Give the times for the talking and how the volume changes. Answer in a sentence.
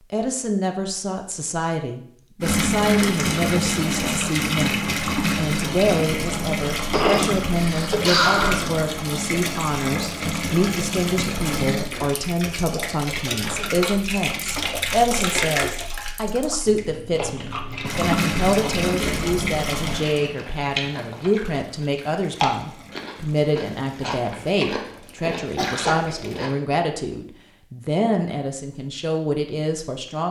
The talking can be heard from 0.1 to 30.2 s, at a steady volume.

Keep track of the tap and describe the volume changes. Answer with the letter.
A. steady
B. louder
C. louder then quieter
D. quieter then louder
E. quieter
E.